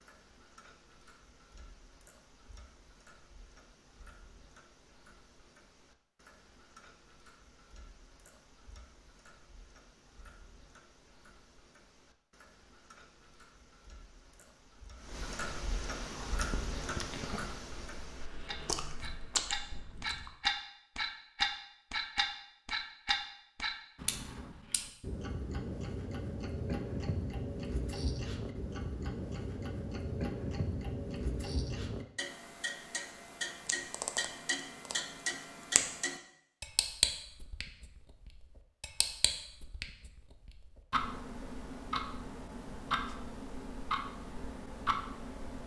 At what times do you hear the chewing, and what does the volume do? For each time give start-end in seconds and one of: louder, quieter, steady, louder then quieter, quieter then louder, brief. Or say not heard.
16.2-20.4 quieter then louder.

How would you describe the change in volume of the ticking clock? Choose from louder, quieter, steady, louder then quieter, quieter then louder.
louder.